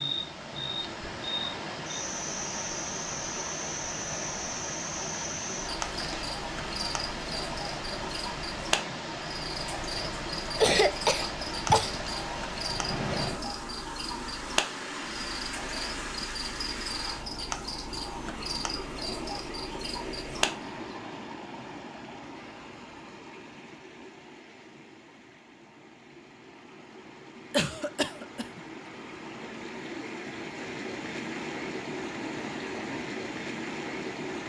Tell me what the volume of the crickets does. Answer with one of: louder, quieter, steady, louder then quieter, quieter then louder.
steady.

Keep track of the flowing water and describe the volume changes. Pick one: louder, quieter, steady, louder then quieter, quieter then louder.
quieter then louder.